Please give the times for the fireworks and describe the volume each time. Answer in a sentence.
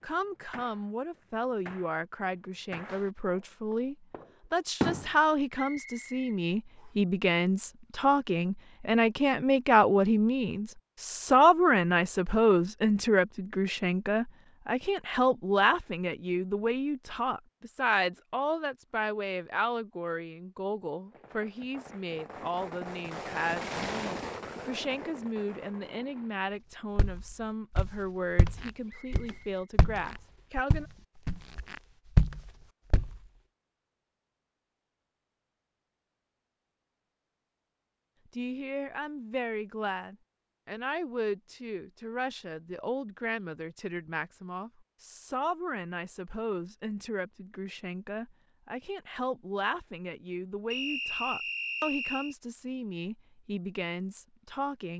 You can hear the fireworks from 0.0 to 5.2 s, getting louder then quieter; and from 21.1 to 26.4 s, getting louder then quieter.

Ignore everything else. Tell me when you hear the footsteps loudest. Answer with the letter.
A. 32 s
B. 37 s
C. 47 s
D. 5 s
A.